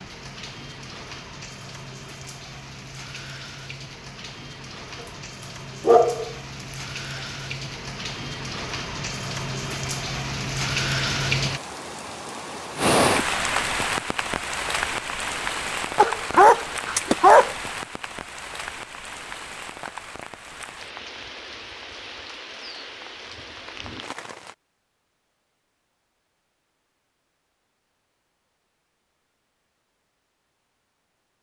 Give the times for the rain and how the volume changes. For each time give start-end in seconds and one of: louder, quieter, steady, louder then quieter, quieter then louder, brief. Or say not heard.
0.0-24.6 louder then quieter.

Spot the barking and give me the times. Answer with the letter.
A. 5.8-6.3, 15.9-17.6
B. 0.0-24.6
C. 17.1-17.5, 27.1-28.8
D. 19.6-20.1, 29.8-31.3
A.